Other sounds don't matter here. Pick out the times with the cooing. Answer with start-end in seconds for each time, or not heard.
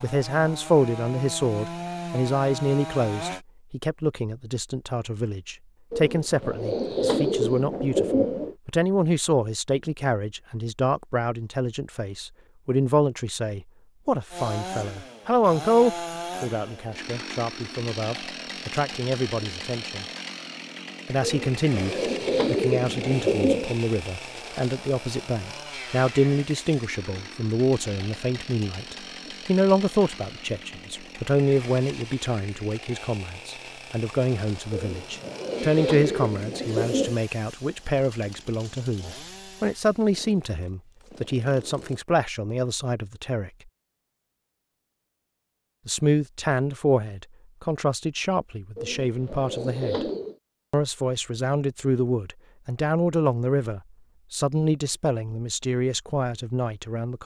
5.9-8.6, 21.2-23.8, 34.7-37.1, 48.8-50.4.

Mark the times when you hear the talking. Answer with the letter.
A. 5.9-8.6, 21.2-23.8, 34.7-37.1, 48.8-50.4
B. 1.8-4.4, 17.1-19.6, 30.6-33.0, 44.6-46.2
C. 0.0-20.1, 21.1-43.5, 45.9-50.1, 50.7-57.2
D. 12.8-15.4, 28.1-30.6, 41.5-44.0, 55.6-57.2
C.